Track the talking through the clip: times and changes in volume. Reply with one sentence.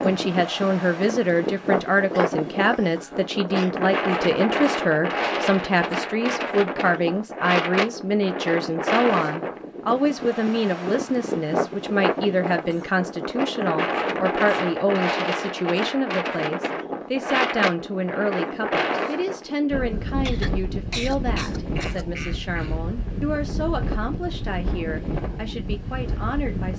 The talking can be heard from 0.0 to 26.7 s, getting quieter.